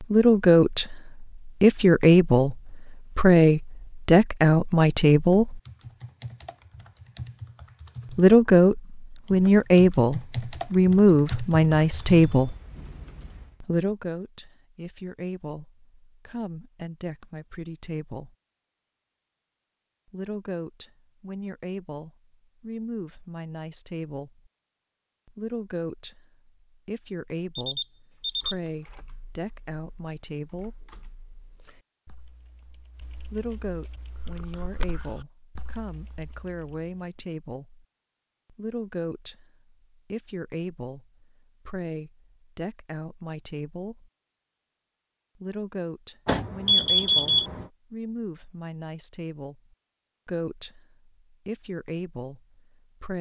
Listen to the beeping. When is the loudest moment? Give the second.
47 s.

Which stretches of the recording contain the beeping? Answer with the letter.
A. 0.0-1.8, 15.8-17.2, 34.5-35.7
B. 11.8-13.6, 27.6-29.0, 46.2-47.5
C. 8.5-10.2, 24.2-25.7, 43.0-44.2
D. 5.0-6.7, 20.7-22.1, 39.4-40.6
B.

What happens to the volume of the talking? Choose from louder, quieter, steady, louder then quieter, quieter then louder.
quieter.